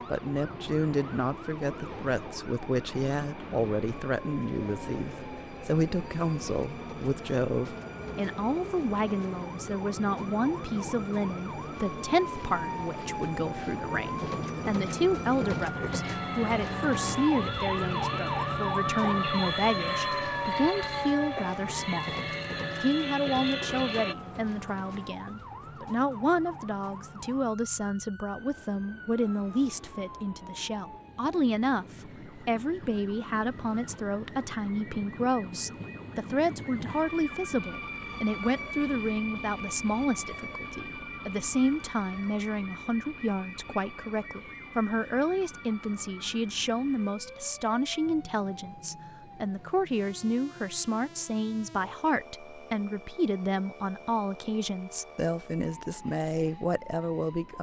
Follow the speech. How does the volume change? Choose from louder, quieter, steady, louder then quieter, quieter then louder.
steady.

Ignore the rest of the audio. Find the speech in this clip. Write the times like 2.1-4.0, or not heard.
0.1-22.2, 22.8-57.5.